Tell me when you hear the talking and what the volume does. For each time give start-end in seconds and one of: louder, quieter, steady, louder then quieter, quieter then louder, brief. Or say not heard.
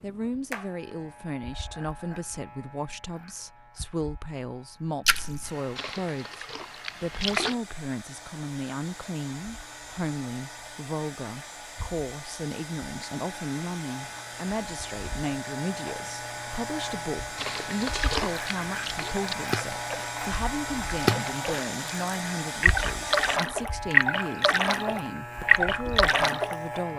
0.0-26.9 steady.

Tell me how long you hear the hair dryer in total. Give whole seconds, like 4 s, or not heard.
18 s.